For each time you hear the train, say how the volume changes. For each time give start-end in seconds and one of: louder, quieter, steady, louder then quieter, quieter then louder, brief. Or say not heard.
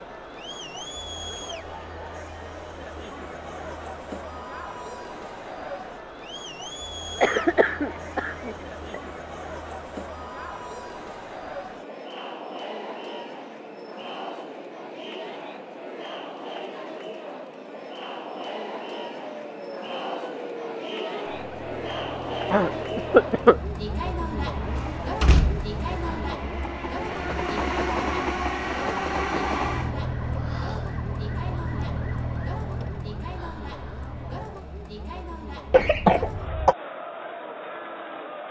24.4-29.9 louder.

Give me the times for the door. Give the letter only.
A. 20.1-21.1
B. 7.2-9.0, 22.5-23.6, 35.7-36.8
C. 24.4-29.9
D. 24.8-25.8
D.